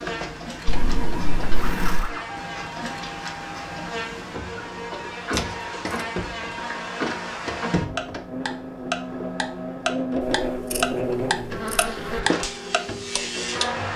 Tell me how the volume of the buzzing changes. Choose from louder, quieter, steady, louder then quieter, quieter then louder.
louder.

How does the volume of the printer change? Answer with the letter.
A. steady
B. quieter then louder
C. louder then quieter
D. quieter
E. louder
A.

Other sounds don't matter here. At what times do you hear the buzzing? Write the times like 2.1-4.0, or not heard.
0.0-13.9.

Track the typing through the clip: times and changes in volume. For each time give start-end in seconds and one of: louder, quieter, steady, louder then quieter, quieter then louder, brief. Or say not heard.
not heard.